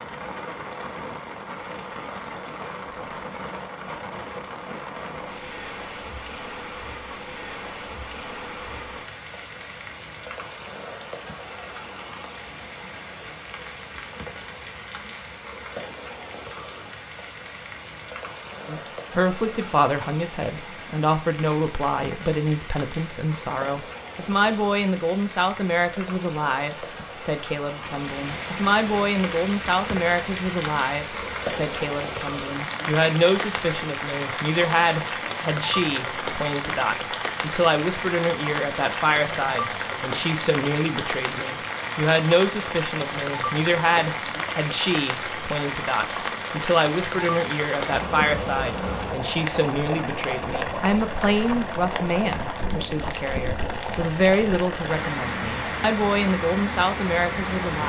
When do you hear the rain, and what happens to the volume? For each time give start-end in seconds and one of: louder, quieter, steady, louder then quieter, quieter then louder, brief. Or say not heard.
0.0-57.8 louder.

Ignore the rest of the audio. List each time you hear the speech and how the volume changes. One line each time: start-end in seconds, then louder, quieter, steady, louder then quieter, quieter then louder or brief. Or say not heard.
18.6-57.8 steady.